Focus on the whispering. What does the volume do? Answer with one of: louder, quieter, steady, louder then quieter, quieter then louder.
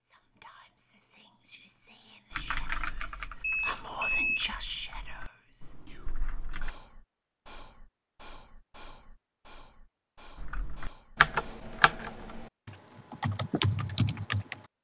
louder then quieter.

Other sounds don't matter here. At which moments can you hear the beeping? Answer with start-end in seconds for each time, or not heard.
3.4-4.5.